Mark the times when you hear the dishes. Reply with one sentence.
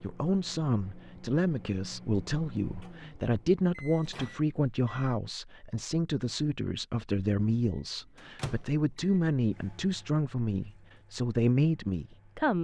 The dishes can't be heard in this clip.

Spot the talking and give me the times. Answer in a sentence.
You can hear the talking from 0.0 to 12.5 s.